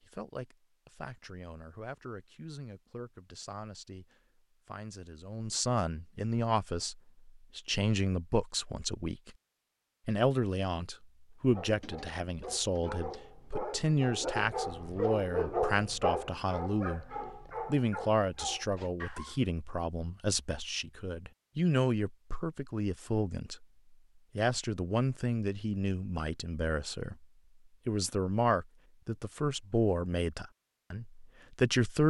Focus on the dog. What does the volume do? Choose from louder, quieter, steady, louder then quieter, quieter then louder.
louder then quieter.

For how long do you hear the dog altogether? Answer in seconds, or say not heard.
8 s.